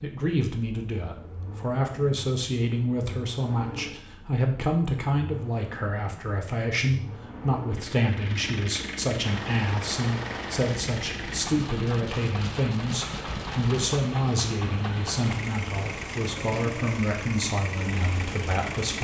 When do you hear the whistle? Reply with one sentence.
You can't hear the whistle here.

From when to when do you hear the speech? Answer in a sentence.
You can hear the speech from 0.0 to 18.9 s.